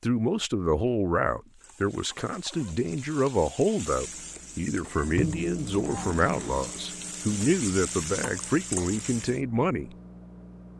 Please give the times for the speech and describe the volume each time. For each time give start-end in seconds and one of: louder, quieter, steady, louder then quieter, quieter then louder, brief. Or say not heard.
0.0-9.9 steady.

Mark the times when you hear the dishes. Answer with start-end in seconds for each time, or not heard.
not heard.